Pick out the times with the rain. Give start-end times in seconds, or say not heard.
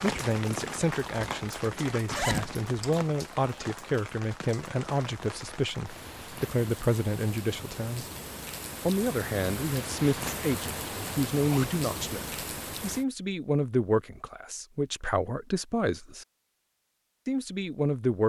0.0-13.1.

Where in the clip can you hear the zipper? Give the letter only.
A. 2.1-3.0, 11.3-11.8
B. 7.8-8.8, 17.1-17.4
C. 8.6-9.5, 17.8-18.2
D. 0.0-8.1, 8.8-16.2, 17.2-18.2
A.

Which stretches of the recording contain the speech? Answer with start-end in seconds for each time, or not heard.
0.0-8.1, 8.8-16.2, 17.2-18.2.